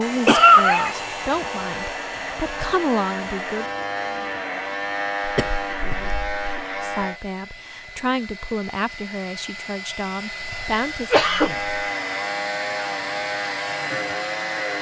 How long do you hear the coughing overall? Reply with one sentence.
The coughing can be heard for 4 seconds in total.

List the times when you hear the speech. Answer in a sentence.
The speech can be heard from 0.0 to 3.6 s and from 6.8 to 11.2 s.